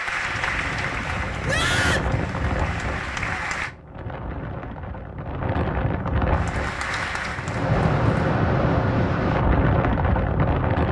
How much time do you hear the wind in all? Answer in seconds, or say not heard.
11 s.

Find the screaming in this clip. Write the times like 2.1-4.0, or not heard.
1.4-2.1.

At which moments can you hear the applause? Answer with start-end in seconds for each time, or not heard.
0.0-3.8, 6.3-8.4.